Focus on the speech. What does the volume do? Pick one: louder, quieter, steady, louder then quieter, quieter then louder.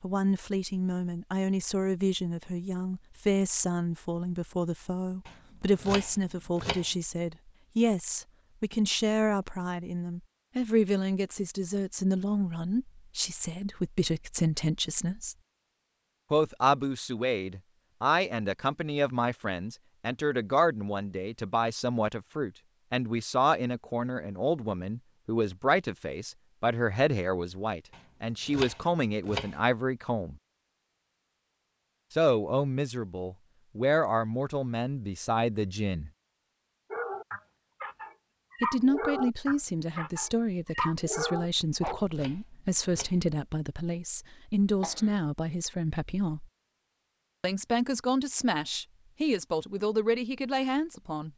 steady.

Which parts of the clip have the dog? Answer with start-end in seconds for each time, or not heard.
36.9-42.0.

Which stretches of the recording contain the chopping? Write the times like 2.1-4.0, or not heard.
5.2-6.9, 27.9-29.6, 41.5-43.2.